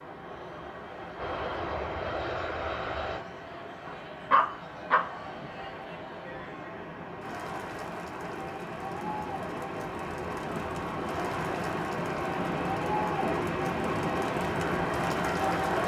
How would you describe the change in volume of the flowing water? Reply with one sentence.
The volume of the flowing water goes up.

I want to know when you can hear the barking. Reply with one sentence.
You can hear the barking from 3.9 to 5.1 s.